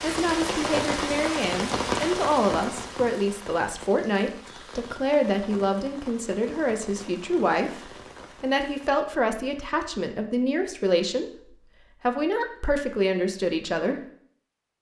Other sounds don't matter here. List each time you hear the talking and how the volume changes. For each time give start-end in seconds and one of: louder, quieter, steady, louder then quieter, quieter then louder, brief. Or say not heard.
0.0-13.9 steady.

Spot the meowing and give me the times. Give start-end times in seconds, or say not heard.
not heard.